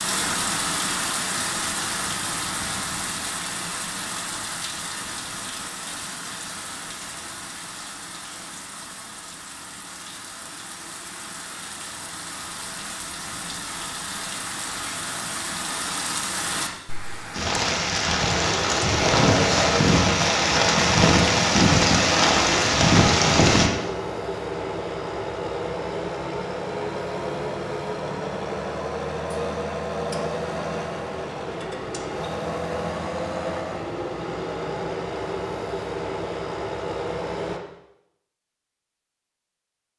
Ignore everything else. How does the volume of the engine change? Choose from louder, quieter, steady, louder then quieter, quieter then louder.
steady.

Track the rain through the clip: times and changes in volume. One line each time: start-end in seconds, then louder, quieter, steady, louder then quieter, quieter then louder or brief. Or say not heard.
0.0-23.7 quieter then louder.